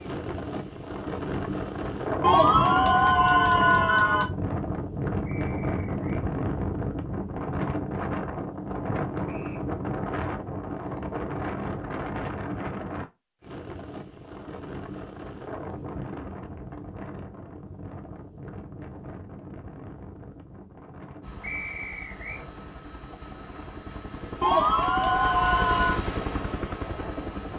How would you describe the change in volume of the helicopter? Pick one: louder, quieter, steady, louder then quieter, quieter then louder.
louder.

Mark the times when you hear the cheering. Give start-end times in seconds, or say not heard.
2.2-4.2, 24.4-26.0.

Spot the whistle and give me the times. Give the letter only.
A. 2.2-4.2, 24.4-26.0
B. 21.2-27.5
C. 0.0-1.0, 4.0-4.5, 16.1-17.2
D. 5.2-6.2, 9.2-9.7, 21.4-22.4
D.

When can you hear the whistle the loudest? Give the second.
22 s.